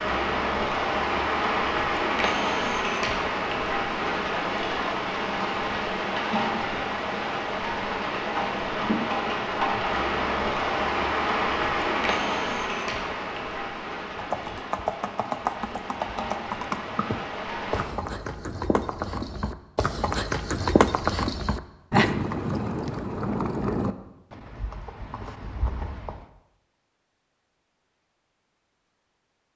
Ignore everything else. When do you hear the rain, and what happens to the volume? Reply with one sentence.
The rain can be heard from 0.0 to 17.9 s, getting quieter.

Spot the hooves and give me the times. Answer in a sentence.
The hooves can be heard from 14.2 to 26.2 s.